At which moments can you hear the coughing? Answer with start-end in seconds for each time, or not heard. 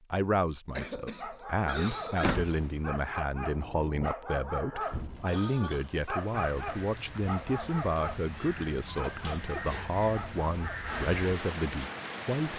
0.8-2.4, 4.8-6.1, 9.5-9.9.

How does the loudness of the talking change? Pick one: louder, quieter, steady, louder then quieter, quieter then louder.
steady.